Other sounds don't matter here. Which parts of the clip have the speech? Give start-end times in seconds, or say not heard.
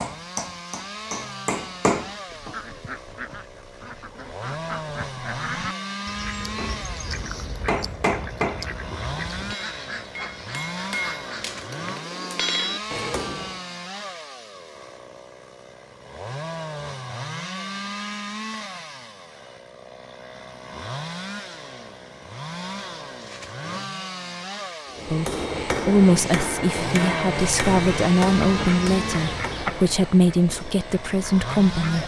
25.1-32.0.